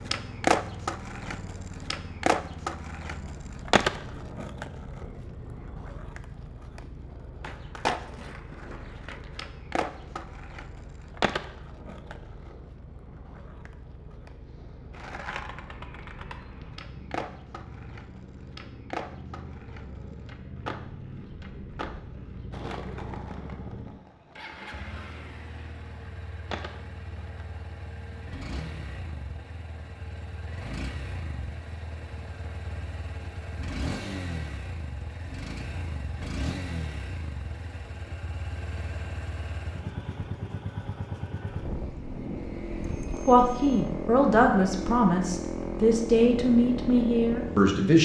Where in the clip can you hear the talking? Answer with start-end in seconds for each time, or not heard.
43.2-48.0.